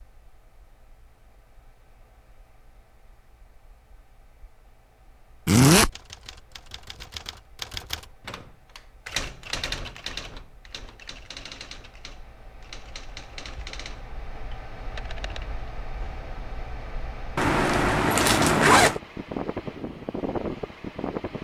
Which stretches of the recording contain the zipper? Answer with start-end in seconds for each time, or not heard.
5.5-5.9, 17.4-19.0.